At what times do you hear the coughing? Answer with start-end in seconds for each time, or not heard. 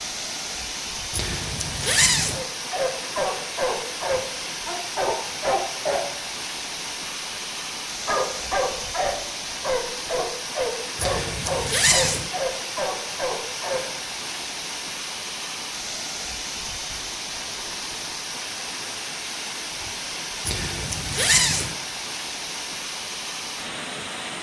not heard.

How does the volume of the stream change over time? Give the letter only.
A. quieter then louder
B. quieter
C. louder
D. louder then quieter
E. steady
E.